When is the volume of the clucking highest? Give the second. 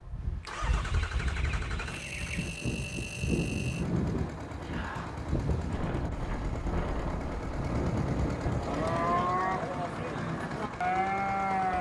2 s.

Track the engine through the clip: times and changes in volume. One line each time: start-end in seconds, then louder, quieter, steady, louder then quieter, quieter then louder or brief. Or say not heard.
0.0-11.7 steady.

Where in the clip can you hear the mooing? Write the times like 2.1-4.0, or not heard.
8.5-11.7.